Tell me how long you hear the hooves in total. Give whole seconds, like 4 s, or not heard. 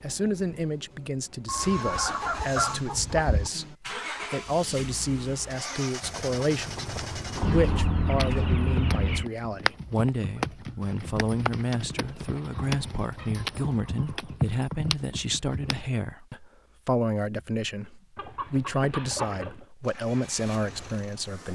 10 s.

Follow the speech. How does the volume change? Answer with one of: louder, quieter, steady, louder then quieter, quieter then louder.
steady.